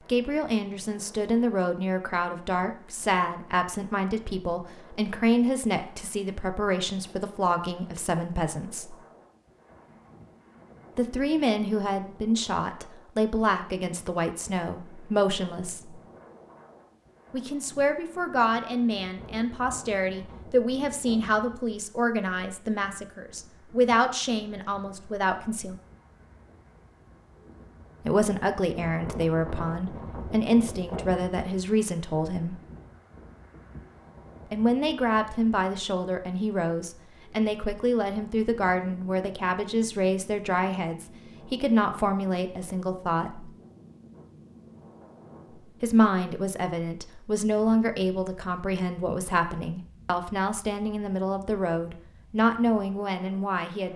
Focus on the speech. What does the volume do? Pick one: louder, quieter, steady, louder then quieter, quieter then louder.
steady.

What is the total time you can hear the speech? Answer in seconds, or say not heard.
44 s.